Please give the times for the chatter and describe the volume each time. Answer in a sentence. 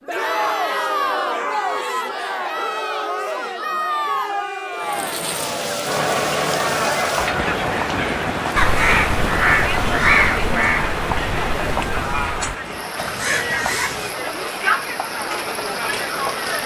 You can hear the chatter from 0.0 to 16.6 s, at a steady volume.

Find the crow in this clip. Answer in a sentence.
You can hear the crow from 8.6 to 14.2 s.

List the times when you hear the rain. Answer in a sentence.
You can hear the rain from 4.8 to 16.6 s.